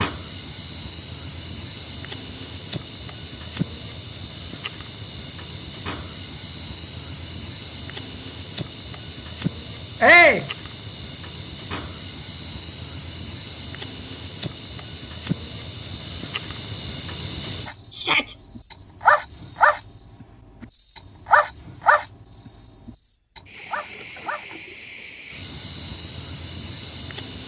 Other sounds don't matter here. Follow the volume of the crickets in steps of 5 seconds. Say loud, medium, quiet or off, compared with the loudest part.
medium, medium, medium, loud, medium, medium.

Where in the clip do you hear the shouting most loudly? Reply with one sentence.
The loudest moment of the shouting is at 10 seconds.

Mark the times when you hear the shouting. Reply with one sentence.
The shouting can be heard from 10.0 to 10.4 s and from 17.9 to 18.4 s.